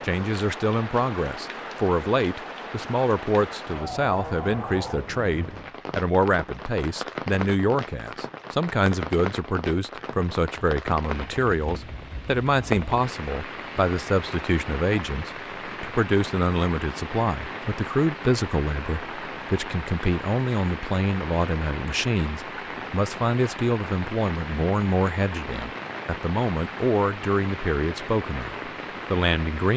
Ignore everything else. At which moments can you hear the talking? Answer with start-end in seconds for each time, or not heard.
0.0-29.7.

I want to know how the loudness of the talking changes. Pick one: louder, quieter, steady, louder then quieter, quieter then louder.
steady.